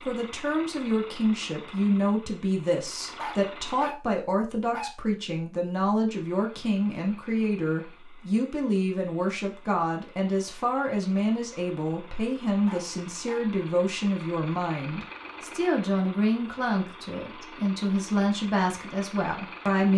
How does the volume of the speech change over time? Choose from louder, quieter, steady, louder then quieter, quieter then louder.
steady.